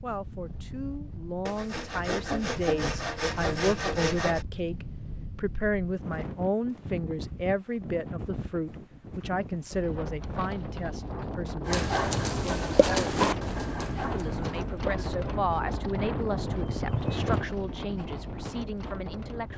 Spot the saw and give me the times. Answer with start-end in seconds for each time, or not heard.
1.4-4.5.